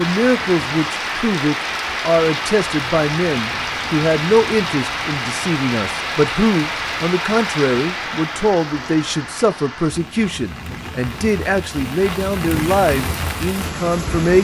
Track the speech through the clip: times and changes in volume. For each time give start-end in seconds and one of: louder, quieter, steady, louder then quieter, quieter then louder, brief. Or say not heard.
0.0-14.3 steady.